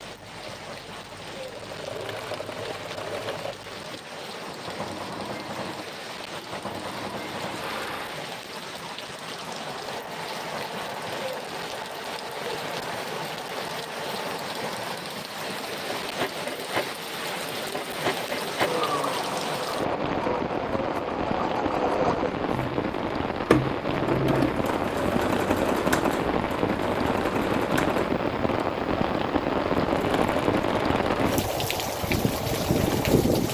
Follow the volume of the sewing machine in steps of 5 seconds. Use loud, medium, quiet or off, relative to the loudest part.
medium, medium, medium, loud, loud, loud, medium.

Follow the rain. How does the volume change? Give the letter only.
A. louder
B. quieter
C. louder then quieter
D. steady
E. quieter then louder
A.